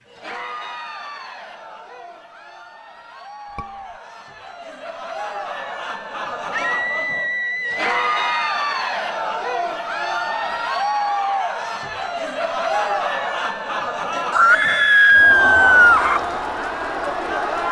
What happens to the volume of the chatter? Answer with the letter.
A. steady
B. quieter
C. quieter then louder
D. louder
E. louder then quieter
D.